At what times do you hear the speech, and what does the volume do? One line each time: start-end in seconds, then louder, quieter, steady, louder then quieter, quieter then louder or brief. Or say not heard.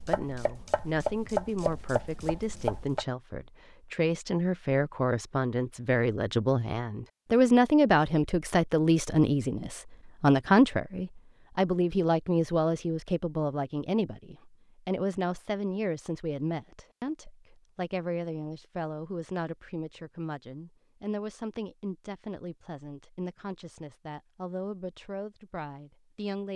0.1-26.5 louder then quieter.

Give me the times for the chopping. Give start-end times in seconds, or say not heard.
0.0-3.0.